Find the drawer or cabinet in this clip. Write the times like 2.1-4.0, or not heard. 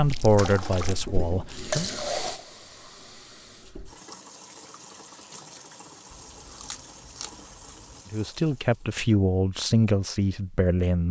not heard.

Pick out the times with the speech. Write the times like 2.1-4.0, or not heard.
0.0-1.9, 8.1-11.0.